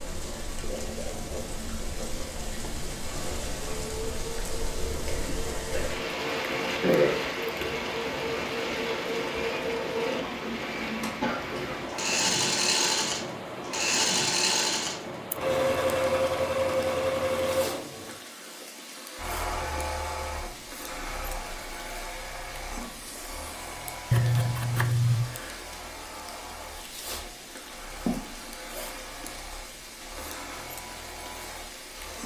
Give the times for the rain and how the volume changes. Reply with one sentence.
The rain can be heard from 0.0 to 32.2 s, getting quieter.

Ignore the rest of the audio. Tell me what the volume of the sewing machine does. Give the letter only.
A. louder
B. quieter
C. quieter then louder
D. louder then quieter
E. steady
D.